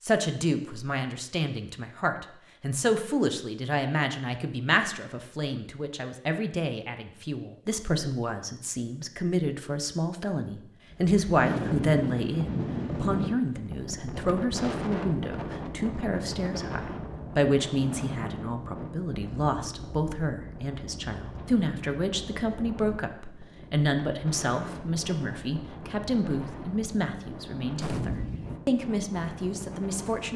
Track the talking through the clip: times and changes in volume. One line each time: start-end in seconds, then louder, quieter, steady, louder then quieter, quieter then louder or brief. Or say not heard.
0.0-30.3 steady.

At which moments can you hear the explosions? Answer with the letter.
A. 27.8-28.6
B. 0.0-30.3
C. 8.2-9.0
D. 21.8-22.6
A.